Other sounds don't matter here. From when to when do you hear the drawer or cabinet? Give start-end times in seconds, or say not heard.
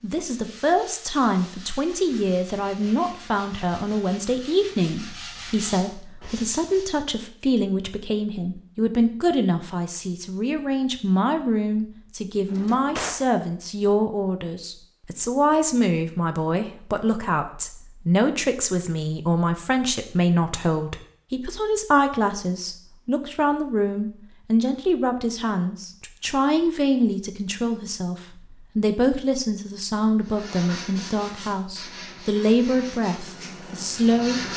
12.4-13.2.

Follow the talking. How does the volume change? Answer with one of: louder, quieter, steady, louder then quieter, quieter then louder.
steady.